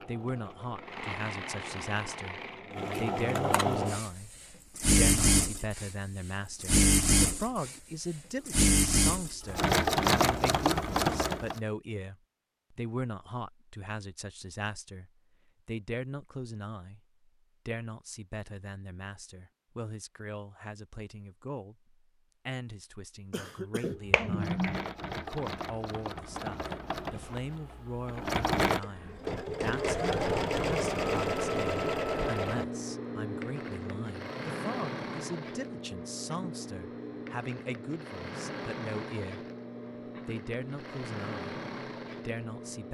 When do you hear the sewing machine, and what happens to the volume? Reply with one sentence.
You can hear the sewing machine from 0.0 to 11.6 s, getting louder; and from 24.1 to 42.8 s, getting louder then quieter.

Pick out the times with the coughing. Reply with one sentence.
You can hear the coughing from 23.3 to 23.9 s.